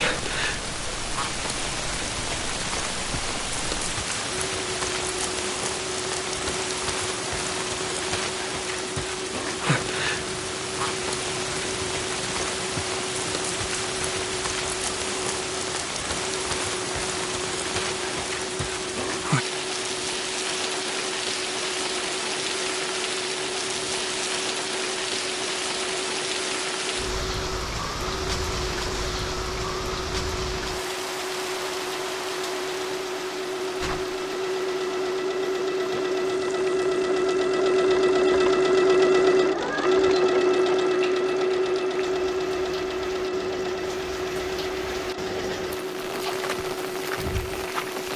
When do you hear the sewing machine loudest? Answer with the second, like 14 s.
39 s.